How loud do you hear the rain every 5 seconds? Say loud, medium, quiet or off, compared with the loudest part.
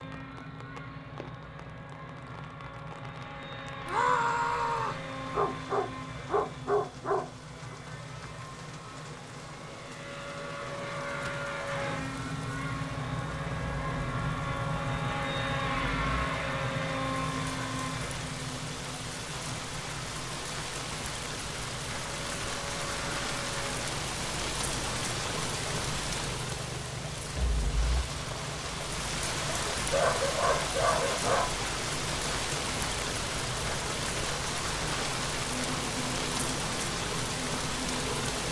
quiet, quiet, quiet, medium, loud, loud, loud, loud.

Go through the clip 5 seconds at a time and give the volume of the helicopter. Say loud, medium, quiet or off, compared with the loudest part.
medium, medium, loud, loud, medium, medium, medium, medium.